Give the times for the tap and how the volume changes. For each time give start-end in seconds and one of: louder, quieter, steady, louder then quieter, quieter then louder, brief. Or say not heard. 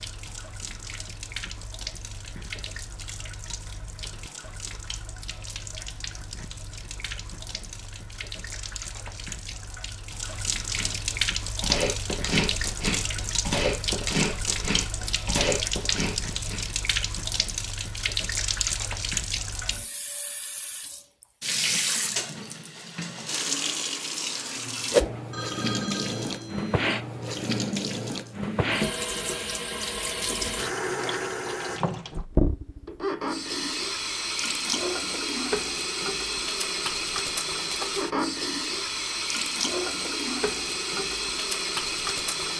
0.0-42.5 louder.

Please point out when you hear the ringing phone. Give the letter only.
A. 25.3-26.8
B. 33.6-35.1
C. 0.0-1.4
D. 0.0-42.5
A.